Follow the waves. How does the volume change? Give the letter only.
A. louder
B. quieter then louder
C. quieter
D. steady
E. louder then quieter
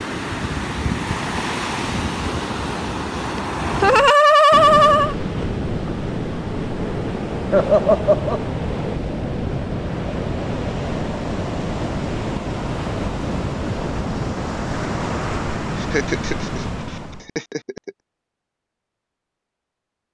D.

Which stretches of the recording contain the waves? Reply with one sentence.
You can hear the waves from 0.0 to 17.2 s.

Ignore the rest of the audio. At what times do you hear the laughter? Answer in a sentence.
The laughter can be heard from 3.3 to 5.2 s, from 7.5 to 8.4 s, from 15.8 to 16.6 s and from 17.2 to 17.9 s.